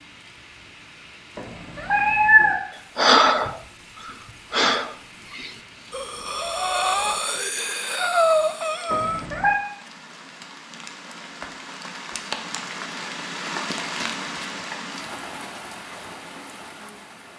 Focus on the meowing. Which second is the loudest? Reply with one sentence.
The volume of the meowing peaks at 2 seconds.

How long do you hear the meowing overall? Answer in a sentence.
The meowing can be heard for 2 seconds in total.